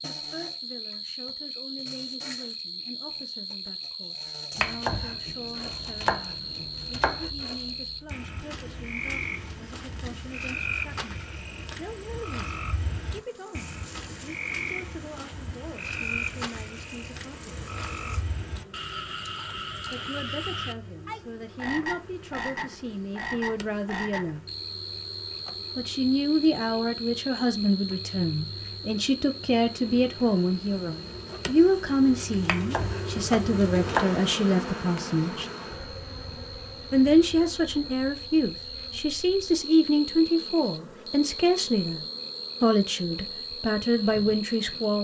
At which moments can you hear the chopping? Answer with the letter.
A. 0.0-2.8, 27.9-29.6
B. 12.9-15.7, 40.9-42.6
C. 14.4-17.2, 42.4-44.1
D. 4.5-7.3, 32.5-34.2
D.